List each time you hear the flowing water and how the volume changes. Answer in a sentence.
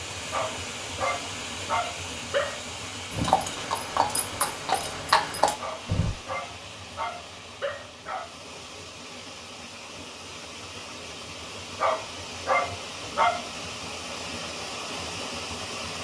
You can hear the flowing water from 0.0 to 16.0 s, getting quieter then louder.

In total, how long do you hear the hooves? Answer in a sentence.
You can hear the hooves for 3 seconds altogether.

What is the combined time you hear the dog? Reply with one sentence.
The dog can be heard for 7 seconds in total.